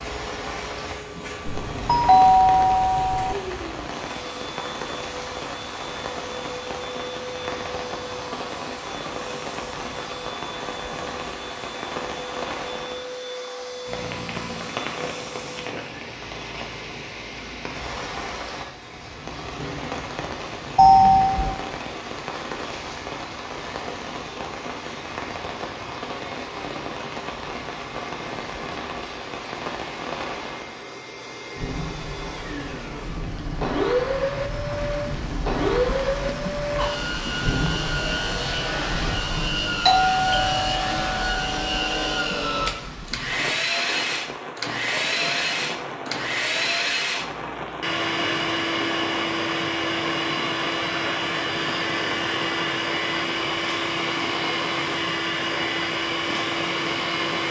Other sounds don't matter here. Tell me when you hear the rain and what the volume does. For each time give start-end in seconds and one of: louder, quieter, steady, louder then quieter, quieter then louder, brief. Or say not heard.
0.0-57.4 steady.